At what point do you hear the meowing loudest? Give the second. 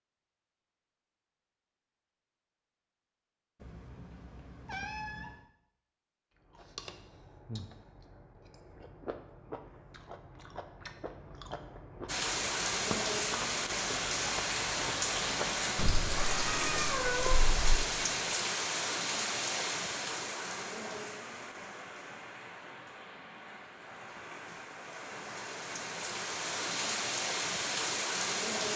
17 s.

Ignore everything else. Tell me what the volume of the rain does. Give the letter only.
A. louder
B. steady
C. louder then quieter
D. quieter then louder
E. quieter
D.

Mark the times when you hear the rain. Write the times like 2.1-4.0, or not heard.
12.1-28.7.